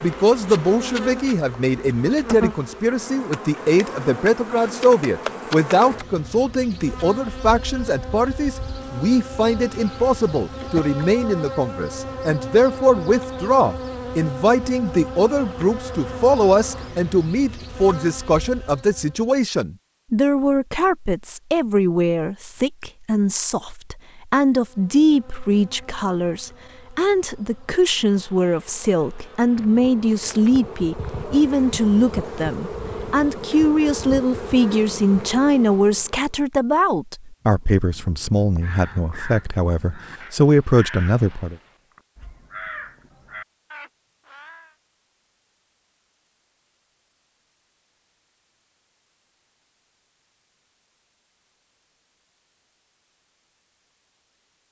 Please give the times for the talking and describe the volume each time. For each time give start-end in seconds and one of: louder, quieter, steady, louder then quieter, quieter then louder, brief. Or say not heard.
0.0-41.5 steady.